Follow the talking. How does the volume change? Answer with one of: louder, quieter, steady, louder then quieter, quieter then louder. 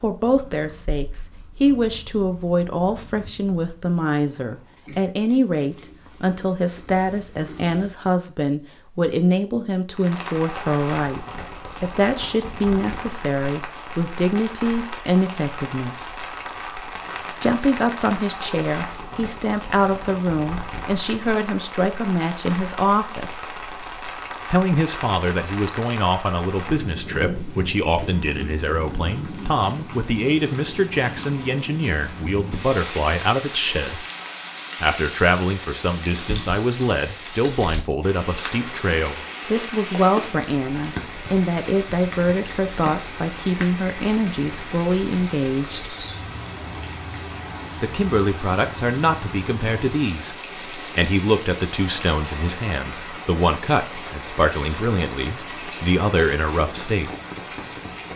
steady.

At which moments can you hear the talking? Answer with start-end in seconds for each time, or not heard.
0.0-16.1, 17.4-23.6, 24.5-34.0, 34.8-46.0, 47.8-57.1.